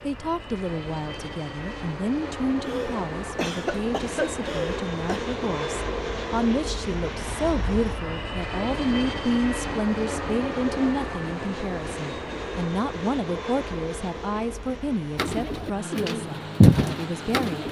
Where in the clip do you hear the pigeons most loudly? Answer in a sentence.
The volume of the pigeons peaks at 17 seconds.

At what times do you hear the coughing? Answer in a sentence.
You can hear the coughing from 2.6 to 5.2 s.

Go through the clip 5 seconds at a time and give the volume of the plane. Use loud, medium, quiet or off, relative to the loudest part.
loud, loud, loud, medium.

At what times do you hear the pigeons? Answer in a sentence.
The pigeons can be heard from 15.2 to 17.6 s.